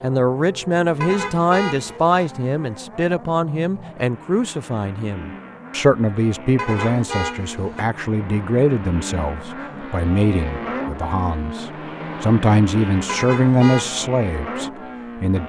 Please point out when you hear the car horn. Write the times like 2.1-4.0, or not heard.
1.0-2.2, 6.5-7.8, 13.1-13.8.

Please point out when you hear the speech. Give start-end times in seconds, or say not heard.
0.0-15.4.